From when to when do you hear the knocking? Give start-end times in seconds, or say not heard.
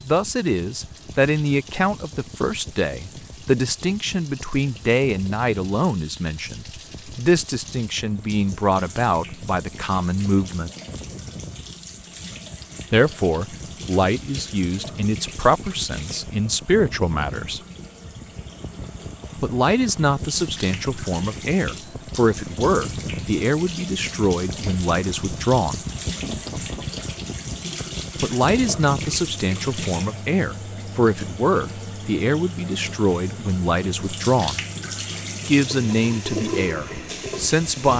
26.1-26.9.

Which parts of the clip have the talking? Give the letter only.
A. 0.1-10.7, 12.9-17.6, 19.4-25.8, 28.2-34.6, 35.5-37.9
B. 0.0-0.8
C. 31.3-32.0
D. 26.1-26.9
A.